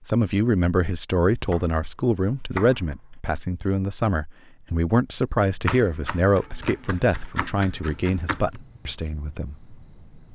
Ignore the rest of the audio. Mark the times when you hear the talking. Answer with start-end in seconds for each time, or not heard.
0.1-9.8.